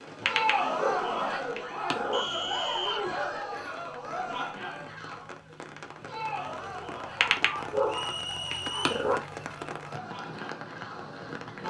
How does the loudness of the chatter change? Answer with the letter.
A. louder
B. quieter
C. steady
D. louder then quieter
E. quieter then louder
B.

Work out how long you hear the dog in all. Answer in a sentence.
The dog can be heard for 4 seconds in total.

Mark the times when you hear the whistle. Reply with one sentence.
You can hear the whistle from 2.1 to 3.0 s and from 7.8 to 9.1 s.